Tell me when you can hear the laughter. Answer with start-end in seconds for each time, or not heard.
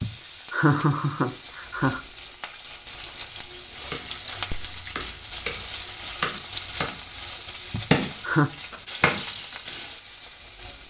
0.0-2.0, 7.7-8.5.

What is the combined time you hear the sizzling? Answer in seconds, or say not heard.
11 s.